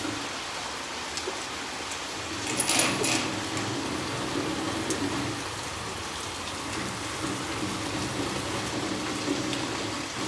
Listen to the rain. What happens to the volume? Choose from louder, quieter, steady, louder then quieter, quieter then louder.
steady.